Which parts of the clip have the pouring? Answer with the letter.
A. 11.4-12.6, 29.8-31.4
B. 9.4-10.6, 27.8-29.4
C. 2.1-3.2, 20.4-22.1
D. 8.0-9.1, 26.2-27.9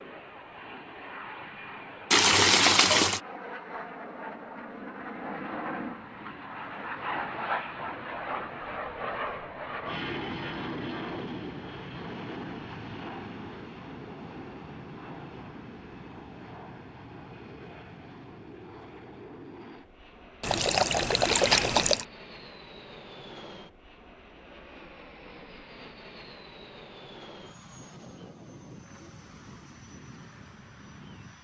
C.